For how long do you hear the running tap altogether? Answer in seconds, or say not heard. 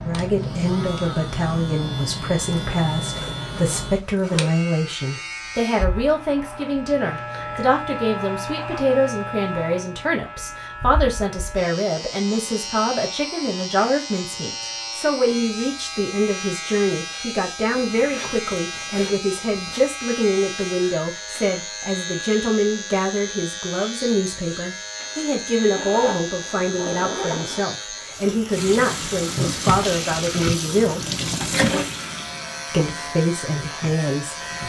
6 s.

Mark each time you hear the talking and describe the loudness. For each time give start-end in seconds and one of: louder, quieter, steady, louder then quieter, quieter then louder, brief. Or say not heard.
0.0-31.1 steady
32.7-34.6 brief.